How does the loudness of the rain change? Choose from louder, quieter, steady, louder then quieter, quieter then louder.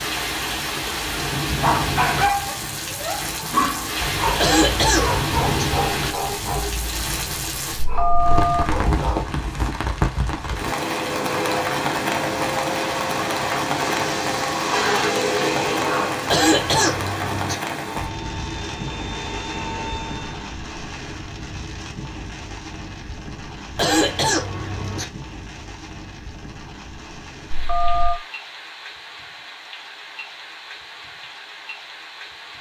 quieter.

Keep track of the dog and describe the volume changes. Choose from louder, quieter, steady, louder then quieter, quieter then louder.
quieter.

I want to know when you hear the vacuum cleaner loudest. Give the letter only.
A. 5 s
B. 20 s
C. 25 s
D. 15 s
D.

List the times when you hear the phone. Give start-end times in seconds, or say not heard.
7.8-8.6, 27.5-28.1.